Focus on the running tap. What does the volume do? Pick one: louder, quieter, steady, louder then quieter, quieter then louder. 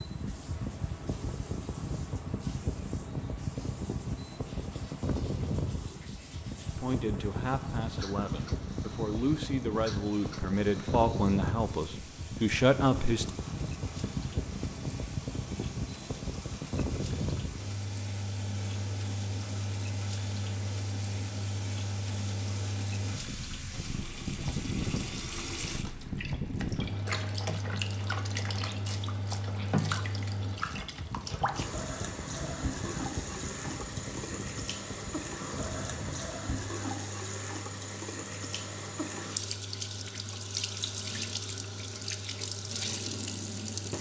louder.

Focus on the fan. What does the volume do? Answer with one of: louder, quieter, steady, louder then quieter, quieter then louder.
quieter.